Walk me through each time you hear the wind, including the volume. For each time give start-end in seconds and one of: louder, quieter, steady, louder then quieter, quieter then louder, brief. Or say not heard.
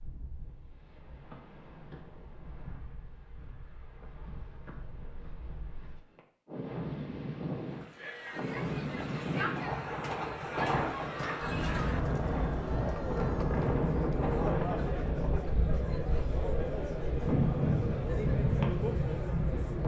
0.0-19.8 louder.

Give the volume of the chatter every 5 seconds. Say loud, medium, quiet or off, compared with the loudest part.
off, loud, loud, loud.